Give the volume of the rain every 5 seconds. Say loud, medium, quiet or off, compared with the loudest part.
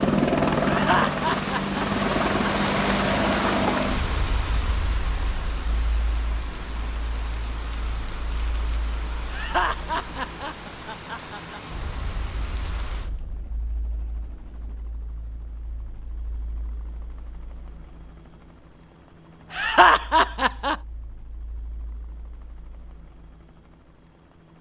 loud, medium, medium, off, off.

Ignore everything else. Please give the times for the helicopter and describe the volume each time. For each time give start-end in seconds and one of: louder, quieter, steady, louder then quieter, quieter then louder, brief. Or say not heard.
0.0-24.5 quieter.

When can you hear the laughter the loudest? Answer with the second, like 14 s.
20 s.